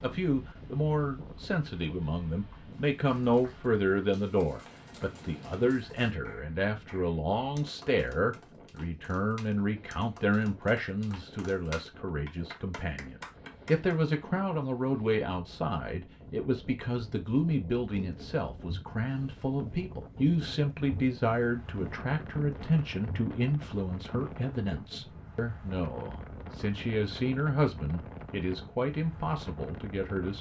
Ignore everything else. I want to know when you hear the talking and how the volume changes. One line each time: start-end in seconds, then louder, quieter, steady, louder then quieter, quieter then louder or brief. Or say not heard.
0.0-30.3 steady.